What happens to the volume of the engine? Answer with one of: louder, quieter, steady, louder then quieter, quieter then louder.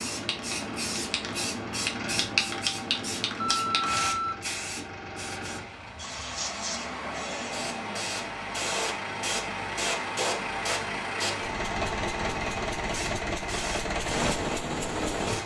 louder.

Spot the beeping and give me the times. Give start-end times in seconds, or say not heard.
3.4-4.8.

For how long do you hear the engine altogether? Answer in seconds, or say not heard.
15 s.